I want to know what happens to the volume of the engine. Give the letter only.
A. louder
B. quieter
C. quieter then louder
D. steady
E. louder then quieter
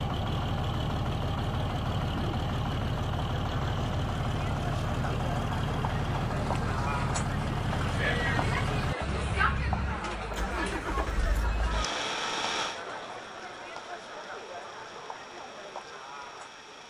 B.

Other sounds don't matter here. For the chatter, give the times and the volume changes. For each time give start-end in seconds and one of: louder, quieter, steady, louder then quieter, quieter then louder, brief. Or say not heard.
0.0-16.8 louder then quieter.